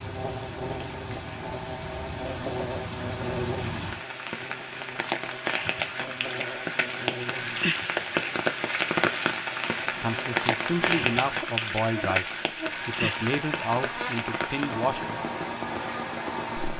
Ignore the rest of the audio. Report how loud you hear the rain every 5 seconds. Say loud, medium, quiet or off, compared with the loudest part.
medium, loud, loud, medium.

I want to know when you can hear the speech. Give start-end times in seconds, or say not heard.
10.0-15.2.